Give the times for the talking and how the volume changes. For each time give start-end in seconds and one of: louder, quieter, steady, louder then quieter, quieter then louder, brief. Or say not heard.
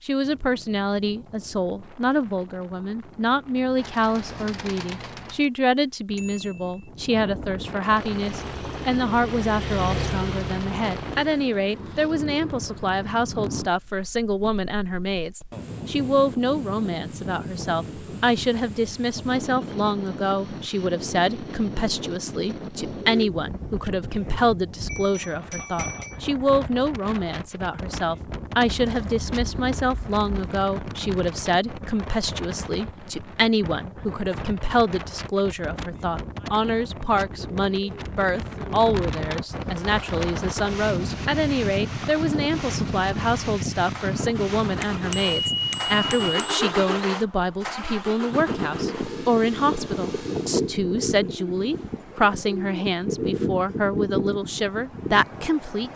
0.0-55.9 steady.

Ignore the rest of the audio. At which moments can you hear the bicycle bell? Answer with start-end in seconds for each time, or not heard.
6.2-6.9, 24.9-26.2, 44.8-46.7.